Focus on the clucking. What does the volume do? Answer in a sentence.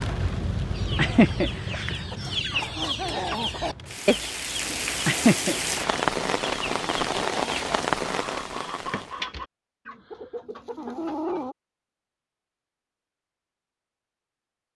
The loudness of the clucking goes down.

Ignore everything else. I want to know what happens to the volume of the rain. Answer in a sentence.
The volume of the rain goes down, then up.